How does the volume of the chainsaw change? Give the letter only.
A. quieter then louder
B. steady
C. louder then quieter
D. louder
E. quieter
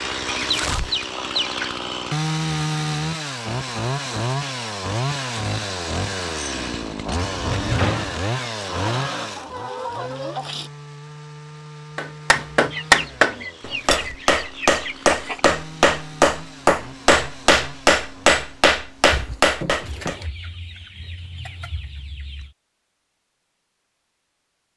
E.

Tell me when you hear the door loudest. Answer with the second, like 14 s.
8 s.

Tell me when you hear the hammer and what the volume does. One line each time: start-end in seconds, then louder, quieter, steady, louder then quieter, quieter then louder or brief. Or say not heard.
11.9-20.1 steady.